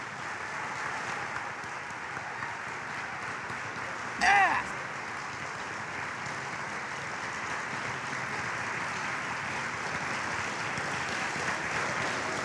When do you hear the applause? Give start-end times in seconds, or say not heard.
0.0-12.3.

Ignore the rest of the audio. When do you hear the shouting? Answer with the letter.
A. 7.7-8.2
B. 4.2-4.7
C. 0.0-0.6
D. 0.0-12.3
B.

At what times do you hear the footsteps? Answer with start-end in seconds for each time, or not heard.
not heard.